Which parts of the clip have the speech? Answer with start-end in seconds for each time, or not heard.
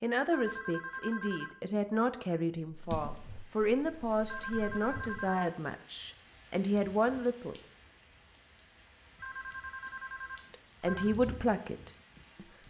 0.0-7.6, 10.5-12.4.